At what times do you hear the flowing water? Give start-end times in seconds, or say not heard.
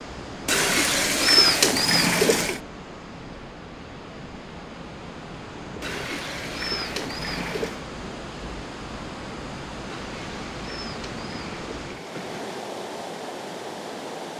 0.0-14.3.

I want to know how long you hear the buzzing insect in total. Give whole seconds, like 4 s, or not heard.
not heard.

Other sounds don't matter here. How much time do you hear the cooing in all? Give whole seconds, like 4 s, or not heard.
7 s.